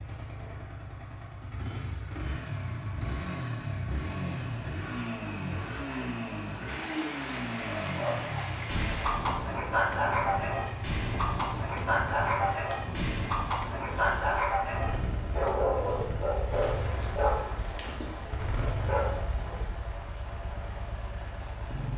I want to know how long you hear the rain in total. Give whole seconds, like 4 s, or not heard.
15 s.